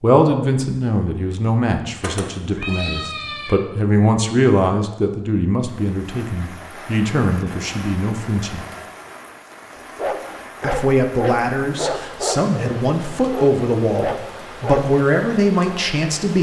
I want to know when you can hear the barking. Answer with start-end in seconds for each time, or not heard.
9.8-14.9.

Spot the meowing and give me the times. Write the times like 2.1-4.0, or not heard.
2.0-3.5.